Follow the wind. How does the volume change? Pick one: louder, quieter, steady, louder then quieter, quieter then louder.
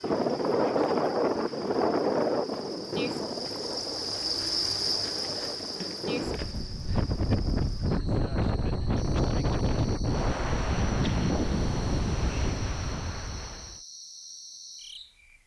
quieter then louder.